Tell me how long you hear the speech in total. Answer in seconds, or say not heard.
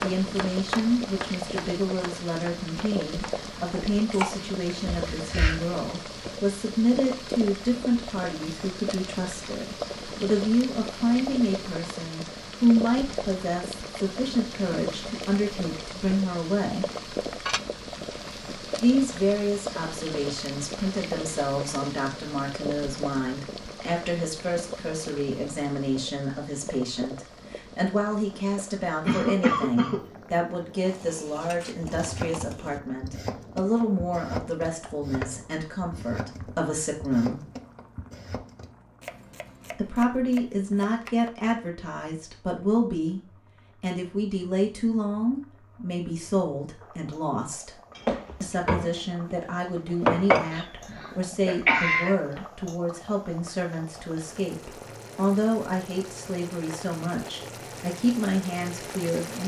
54 s.